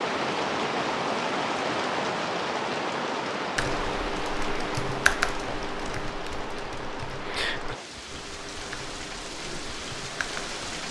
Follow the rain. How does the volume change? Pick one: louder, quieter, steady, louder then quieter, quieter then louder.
quieter.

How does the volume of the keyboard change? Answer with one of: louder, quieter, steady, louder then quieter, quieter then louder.
quieter.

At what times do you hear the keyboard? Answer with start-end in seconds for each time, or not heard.
3.5-10.6.